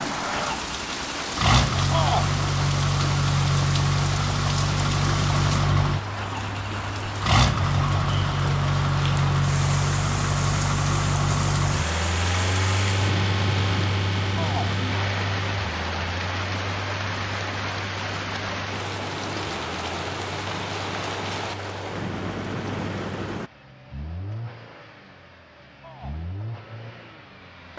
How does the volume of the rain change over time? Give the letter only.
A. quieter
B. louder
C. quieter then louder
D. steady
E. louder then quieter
D.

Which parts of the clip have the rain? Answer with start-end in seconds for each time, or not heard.
0.0-23.5.